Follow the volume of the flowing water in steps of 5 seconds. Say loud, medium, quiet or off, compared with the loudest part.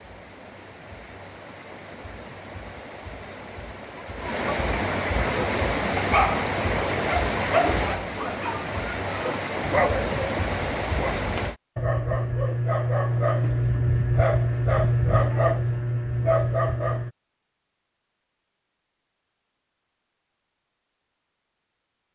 medium, loud, loud, off, off.